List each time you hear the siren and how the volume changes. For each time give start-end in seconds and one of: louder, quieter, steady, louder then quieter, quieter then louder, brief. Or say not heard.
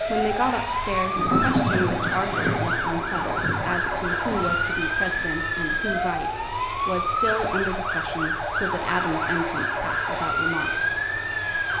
0.0-11.7 steady.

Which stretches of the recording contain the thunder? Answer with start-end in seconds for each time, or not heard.
1.1-4.6.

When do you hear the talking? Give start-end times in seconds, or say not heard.
0.1-10.8.